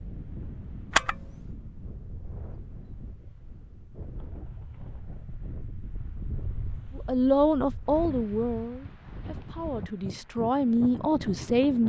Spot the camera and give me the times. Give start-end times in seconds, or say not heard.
0.9-1.5.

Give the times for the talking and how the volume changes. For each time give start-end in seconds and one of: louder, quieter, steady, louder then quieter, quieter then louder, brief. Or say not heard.
7.0-11.8 quieter then louder.